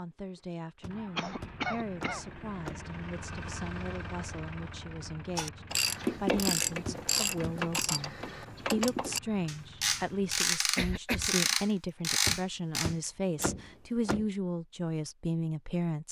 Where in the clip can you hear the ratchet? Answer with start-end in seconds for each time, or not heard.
5.3-13.4.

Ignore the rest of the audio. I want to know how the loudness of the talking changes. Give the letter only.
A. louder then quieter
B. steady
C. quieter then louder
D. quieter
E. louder
E.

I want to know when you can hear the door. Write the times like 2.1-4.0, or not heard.
0.8-2.9, 6.8-7.6, 12.2-14.2.